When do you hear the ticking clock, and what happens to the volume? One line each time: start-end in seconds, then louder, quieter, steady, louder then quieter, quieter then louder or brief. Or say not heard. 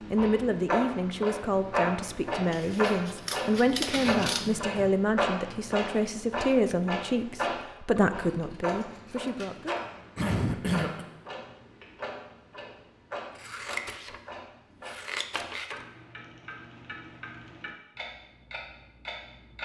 0.0-19.6 quieter.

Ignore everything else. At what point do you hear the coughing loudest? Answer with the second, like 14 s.
11 s.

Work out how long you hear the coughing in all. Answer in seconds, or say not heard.
2 s.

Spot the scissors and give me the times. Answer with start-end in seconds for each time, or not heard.
2.5-4.5, 8.0-9.8, 13.3-15.8.